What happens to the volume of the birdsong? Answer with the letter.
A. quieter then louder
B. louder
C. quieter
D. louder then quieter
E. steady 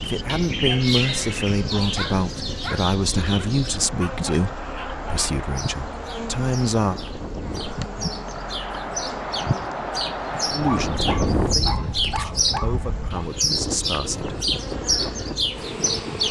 A.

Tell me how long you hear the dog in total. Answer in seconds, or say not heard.
4 s.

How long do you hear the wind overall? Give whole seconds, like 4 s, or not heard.
16 s.